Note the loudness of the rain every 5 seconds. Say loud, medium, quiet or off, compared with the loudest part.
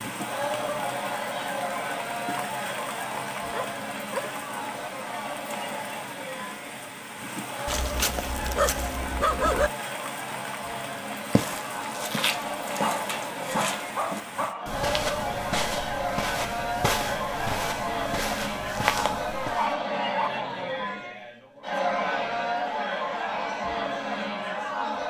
loud, loud, loud, off, off.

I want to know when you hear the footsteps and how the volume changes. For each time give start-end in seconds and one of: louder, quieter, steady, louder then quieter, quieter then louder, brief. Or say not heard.
11.2-19.8 steady.